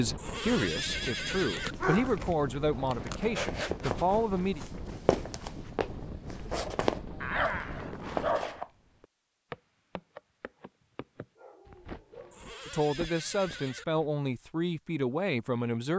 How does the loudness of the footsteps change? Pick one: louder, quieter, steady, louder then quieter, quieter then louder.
quieter.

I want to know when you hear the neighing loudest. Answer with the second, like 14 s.
1 s.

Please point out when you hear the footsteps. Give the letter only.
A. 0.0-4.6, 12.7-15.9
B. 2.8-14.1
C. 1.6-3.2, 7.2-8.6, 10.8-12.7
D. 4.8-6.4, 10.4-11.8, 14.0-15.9
B.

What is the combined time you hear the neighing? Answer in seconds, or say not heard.
3 s.